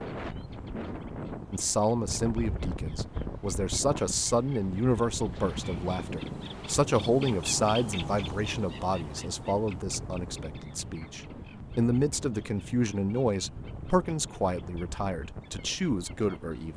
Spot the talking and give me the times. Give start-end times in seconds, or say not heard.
1.5-16.7.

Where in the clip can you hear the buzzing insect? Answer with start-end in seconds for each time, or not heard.
not heard.